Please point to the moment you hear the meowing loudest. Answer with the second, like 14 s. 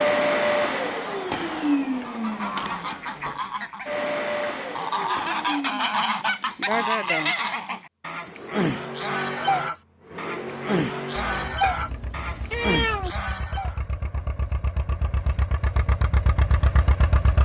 13 s.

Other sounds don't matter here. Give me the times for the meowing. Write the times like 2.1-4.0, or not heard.
11.4-13.2.